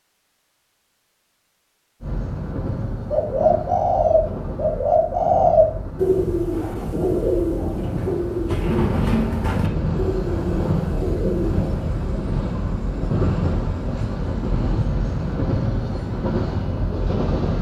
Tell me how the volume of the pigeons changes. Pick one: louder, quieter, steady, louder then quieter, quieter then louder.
quieter.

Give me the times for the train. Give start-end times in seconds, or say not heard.
2.0-17.5.